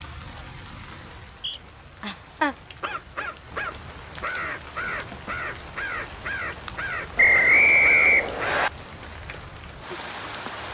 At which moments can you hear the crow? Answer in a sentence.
The crow can be heard from 2.8 to 8.7 s.